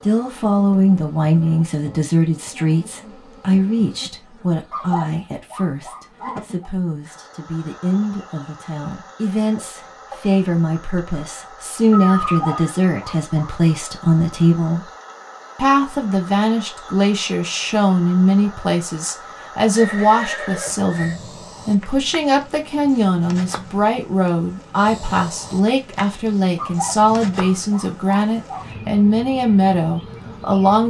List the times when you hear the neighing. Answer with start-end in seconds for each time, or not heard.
11.9-12.7, 19.8-21.2.